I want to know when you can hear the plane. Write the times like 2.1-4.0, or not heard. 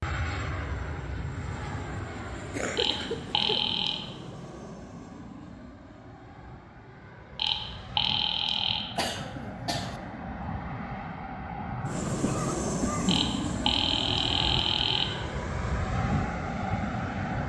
0.0-17.4.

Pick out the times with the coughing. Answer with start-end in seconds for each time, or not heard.
2.5-3.6, 8.9-10.0, 12.2-13.3.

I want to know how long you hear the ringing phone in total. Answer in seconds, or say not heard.
5 s.